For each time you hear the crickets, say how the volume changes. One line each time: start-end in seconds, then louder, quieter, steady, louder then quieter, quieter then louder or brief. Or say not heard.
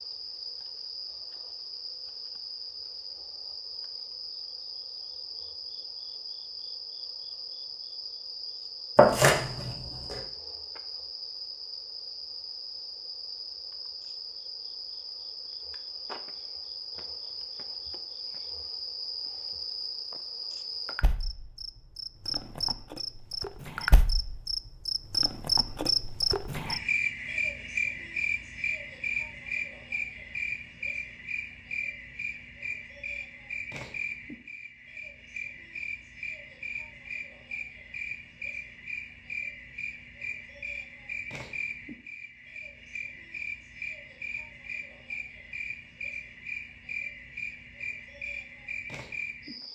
0.0-49.7 louder then quieter.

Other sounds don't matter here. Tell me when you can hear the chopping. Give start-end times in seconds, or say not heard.
8.9-10.2.